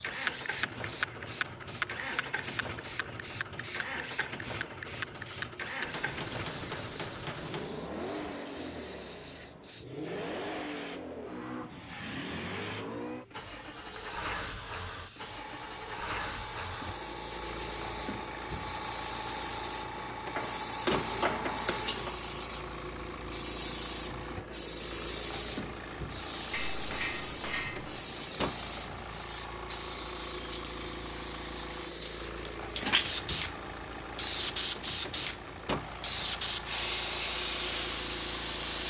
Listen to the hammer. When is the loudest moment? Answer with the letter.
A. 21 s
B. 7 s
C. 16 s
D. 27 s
A.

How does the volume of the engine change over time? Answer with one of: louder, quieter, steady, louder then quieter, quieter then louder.
steady.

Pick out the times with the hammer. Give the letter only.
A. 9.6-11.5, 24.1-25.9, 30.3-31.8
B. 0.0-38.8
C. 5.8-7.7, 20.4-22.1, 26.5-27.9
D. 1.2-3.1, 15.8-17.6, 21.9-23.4
C.